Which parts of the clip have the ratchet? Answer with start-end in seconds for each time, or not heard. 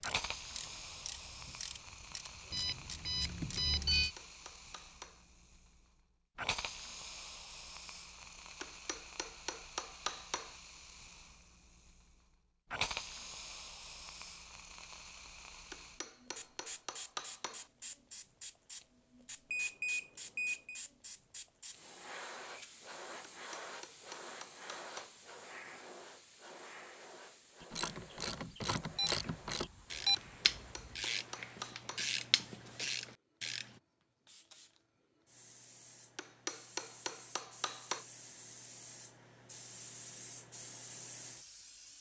0.0-4.0, 27.6-33.7.